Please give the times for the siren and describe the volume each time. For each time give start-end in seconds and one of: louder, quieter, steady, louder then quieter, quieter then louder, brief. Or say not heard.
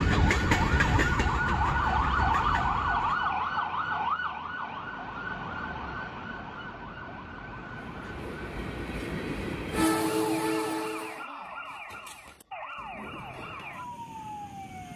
0.0-14.9 quieter.